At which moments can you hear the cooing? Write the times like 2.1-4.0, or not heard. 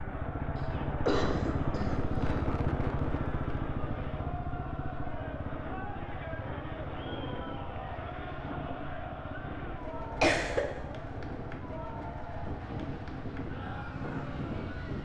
not heard.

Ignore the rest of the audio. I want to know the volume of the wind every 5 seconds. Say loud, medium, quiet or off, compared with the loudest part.
loud, medium, loud.